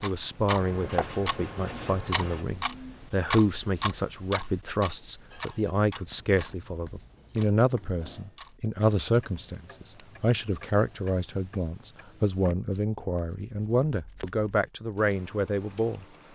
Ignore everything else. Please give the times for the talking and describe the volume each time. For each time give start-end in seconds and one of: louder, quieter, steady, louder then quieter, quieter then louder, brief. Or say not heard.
0.0-16.1 steady.